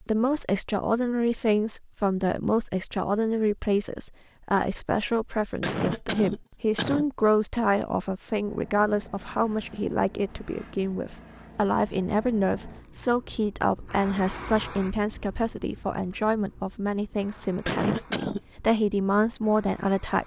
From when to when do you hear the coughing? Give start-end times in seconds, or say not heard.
5.6-7.1, 17.6-18.4.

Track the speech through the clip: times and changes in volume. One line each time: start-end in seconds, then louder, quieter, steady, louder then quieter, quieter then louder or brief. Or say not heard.
0.0-20.2 steady.